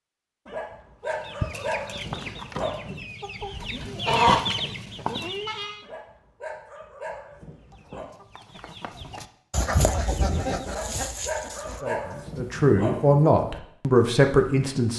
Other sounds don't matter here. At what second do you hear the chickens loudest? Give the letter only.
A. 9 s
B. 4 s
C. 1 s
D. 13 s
B.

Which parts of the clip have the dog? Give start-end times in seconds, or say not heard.
0.5-3.1, 5.8-8.1, 10.7-13.2.